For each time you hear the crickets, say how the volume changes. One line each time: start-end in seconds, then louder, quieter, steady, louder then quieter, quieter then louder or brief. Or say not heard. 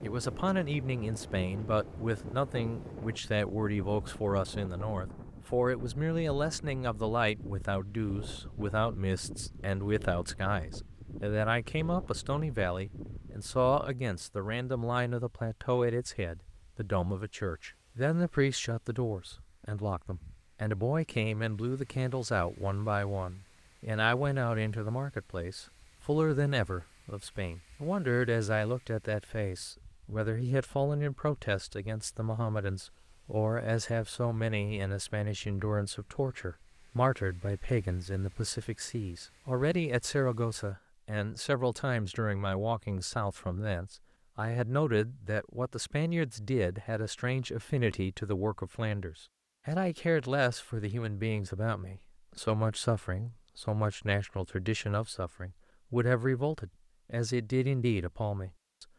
not heard.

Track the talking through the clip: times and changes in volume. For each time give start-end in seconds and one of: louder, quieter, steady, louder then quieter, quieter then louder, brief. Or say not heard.
0.0-58.9 steady.